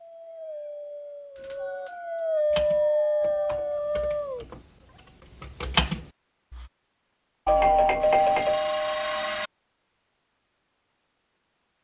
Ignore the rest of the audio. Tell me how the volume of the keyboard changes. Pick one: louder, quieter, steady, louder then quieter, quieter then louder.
louder.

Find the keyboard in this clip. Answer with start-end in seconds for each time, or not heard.
2.5-6.7.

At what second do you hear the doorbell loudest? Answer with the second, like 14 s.
8 s.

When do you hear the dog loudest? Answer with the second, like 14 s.
3 s.